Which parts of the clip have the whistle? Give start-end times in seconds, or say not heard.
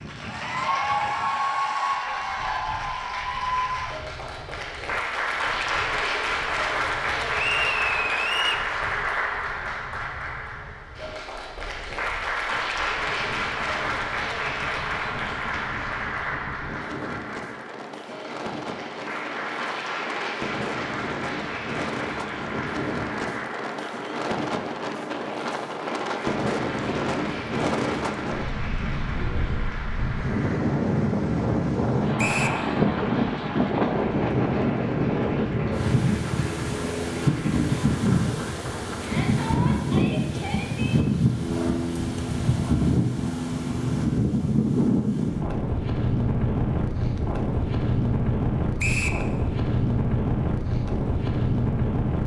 7.3-8.7, 32.1-32.6, 48.8-49.2.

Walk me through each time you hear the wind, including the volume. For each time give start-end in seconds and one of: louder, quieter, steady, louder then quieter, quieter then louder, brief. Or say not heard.
0.0-52.2 louder.